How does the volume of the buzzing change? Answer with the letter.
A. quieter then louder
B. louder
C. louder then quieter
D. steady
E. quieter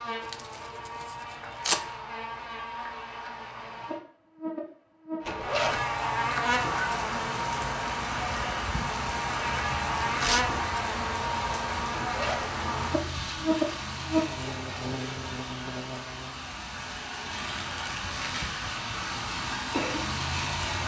B.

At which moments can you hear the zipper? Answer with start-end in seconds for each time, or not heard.
5.2-5.8, 11.9-12.6.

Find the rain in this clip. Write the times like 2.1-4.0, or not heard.
6.5-20.8.